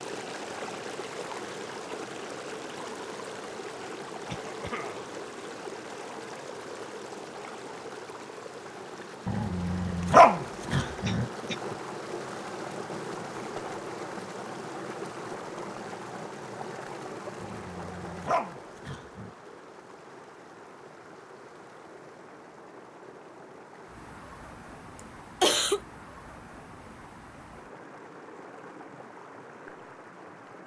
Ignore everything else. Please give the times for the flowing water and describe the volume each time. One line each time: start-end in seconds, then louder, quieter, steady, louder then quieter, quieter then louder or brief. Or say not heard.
0.0-30.6 quieter.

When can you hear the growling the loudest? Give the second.
10 s.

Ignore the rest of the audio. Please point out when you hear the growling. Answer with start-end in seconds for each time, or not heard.
9.2-11.2, 17.4-19.3.